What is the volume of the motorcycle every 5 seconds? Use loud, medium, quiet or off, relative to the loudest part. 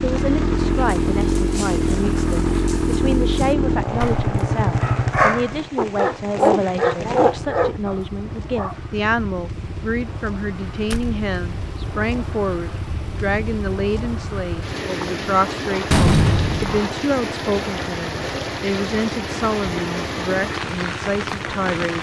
loud, quiet, quiet, quiet, quiet.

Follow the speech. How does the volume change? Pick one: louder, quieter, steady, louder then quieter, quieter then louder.
steady.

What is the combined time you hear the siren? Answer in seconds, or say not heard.
not heard.